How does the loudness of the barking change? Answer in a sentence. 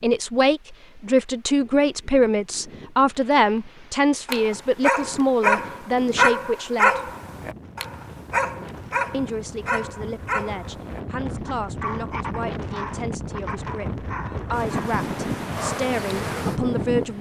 The loudness of the barking goes down.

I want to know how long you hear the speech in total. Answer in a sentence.
The speech can be heard for 15 seconds in total.